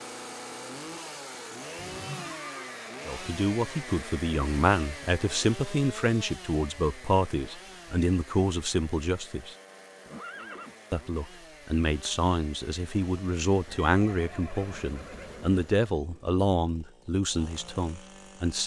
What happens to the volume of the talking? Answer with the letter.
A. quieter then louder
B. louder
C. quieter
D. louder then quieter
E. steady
E.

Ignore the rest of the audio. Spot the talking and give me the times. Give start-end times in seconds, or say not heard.
3.0-9.6, 10.9-18.6.